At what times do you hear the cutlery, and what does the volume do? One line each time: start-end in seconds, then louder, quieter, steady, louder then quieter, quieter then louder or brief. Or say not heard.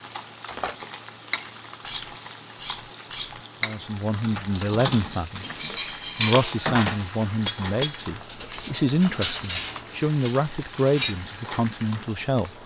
0.5-11.2 steady.